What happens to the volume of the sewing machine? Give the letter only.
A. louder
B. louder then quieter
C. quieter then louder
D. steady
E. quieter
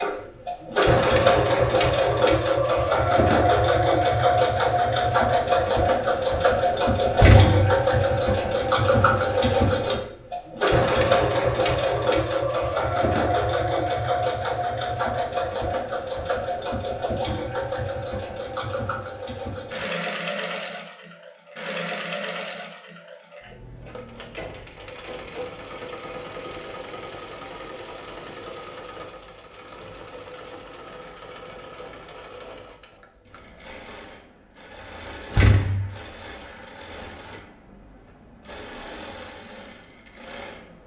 E.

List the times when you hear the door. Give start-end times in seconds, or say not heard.
7.2-7.8, 35.3-35.9.